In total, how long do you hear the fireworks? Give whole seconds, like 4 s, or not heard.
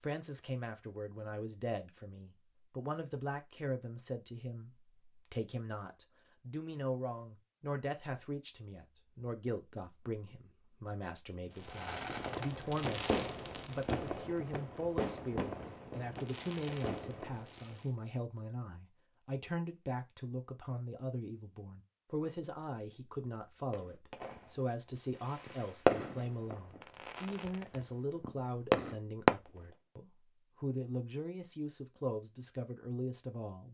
12 s.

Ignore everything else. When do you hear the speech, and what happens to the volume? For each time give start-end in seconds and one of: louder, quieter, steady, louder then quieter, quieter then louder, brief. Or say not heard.
0.0-33.6 steady.